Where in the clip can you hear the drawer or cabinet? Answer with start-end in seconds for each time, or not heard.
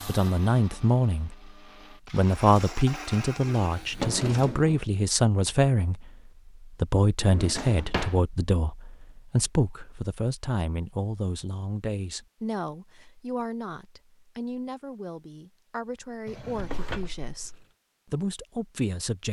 3.8-4.8, 7.2-8.2, 16.2-17.6.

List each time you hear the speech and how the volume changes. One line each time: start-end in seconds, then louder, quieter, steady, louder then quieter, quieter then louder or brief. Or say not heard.
0.1-1.5 brief
2.1-19.2 quieter.